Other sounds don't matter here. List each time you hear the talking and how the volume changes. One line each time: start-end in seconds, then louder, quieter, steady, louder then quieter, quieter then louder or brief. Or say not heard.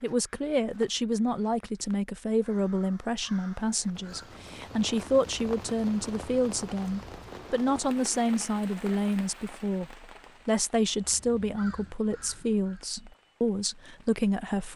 0.0-14.7 steady.